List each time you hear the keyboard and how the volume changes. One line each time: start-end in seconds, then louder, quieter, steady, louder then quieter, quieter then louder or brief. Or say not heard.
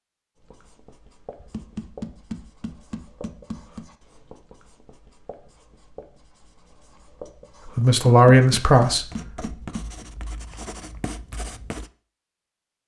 not heard.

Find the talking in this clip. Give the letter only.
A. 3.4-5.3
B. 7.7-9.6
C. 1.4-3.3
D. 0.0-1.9
B.